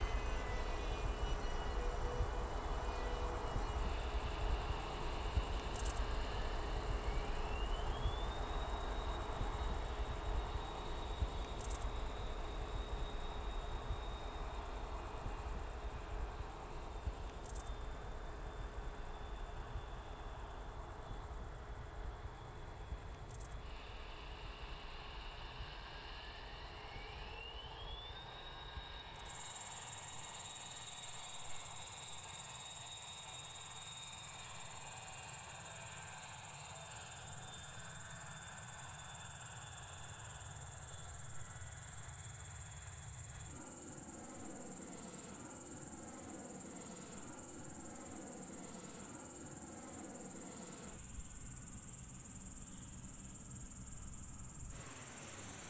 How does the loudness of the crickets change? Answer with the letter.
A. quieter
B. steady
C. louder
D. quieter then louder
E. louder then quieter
A.